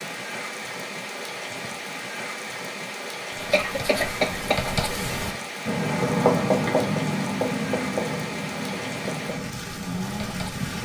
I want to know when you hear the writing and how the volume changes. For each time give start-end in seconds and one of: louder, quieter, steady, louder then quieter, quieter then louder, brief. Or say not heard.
3.3-10.7 louder then quieter.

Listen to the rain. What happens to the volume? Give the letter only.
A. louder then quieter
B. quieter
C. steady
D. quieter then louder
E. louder
C.